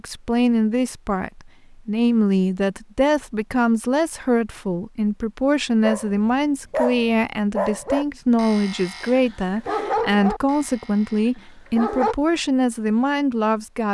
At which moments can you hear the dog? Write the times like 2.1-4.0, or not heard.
5.8-12.2.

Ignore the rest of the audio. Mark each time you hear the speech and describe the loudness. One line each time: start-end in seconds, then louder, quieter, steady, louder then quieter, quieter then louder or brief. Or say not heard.
0.0-13.8 steady.